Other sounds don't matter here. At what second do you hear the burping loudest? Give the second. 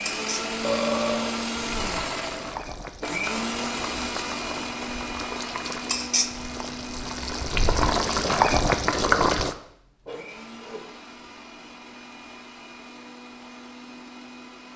1 s.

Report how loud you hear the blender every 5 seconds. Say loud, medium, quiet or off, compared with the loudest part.
loud, medium, quiet.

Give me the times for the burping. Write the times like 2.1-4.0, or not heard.
0.6-1.4, 10.1-10.8.